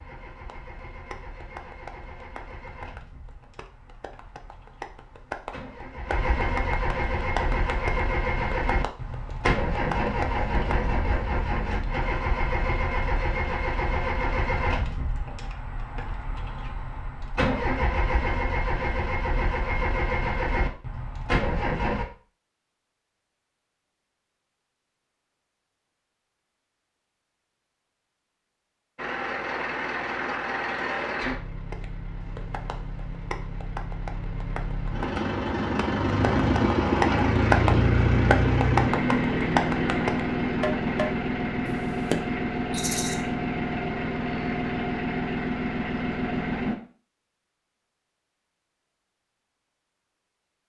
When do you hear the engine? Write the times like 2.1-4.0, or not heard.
0.0-22.1, 28.9-46.8.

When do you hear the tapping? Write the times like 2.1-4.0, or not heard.
0.5-10.9, 31.7-42.2.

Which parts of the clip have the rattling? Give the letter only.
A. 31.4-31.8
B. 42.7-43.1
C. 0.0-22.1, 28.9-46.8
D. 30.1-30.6
B.